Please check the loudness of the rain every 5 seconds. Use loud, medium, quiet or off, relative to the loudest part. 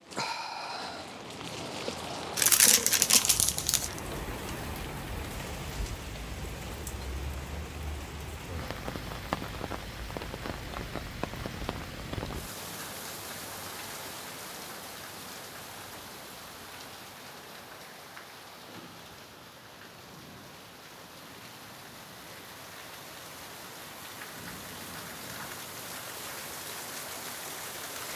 loud, loud, loud, medium, medium, loud.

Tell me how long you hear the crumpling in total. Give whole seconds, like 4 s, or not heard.
2 s.